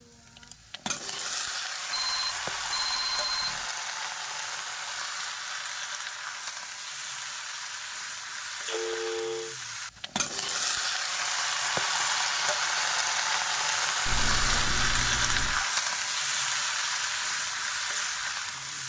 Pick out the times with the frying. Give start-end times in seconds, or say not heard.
0.0-18.8.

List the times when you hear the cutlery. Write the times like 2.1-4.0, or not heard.
not heard.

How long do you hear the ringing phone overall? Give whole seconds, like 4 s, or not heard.
4 s.